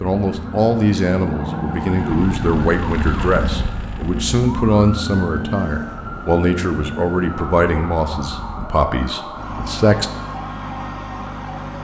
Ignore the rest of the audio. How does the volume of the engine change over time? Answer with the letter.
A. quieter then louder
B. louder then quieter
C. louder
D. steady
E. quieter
E.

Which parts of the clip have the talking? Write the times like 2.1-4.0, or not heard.
0.0-10.1.